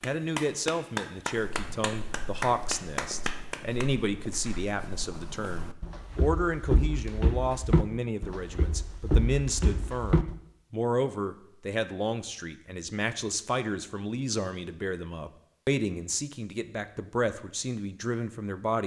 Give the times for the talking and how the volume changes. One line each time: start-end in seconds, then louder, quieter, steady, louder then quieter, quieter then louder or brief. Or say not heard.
0.0-18.8 steady.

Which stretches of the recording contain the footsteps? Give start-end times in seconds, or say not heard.
1.3-10.3.